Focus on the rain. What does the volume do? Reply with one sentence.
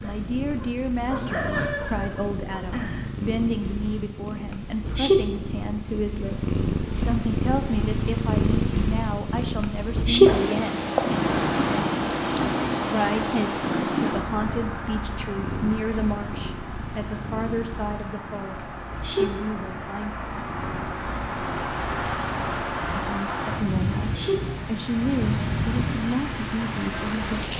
The volume of the rain goes down, then up.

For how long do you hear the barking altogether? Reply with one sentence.
The barking can be heard for 3 seconds in total.